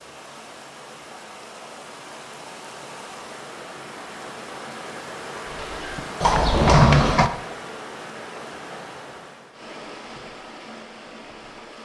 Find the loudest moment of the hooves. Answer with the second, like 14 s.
7 s.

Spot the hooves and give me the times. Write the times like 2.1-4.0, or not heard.
5.5-7.3.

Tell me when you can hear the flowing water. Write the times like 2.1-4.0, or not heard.
0.0-11.8.